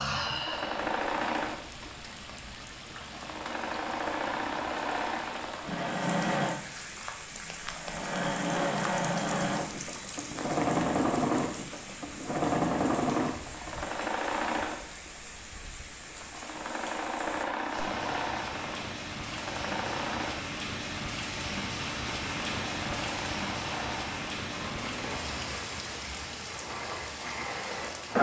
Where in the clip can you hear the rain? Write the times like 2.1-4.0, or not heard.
0.0-28.1.